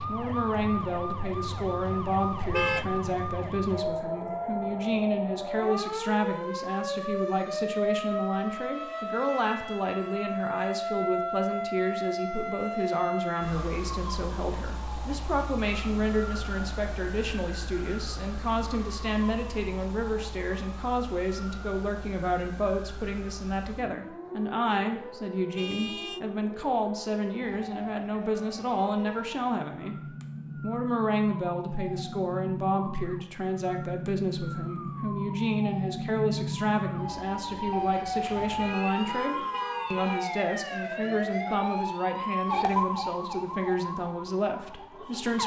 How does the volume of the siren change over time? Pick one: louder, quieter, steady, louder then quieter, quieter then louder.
quieter then louder.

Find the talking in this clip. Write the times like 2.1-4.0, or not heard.
0.1-29.9, 30.6-45.4.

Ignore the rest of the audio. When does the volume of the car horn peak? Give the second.
3 s.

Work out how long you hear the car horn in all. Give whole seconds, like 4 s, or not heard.
4 s.